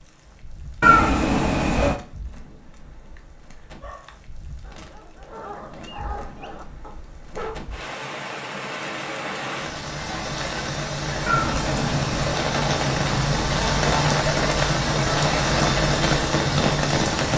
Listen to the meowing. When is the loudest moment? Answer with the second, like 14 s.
1 s.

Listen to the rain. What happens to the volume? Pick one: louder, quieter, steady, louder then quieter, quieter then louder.
louder.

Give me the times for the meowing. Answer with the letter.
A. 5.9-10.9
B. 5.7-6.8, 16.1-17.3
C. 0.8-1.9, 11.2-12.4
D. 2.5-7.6
C.